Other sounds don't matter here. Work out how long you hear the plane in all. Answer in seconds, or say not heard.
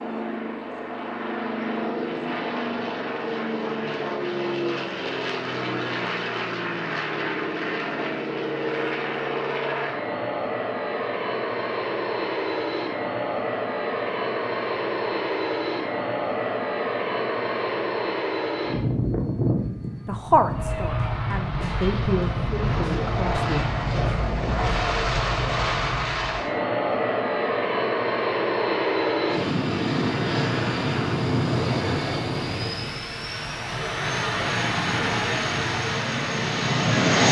37 s.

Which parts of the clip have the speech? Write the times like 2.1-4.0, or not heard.
20.1-23.6.